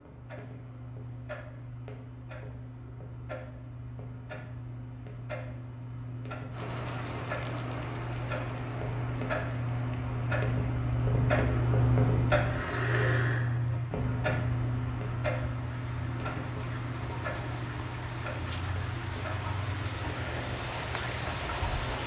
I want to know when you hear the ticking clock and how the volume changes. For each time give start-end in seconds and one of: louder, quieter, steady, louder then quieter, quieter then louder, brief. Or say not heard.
0.0-22.0 louder then quieter.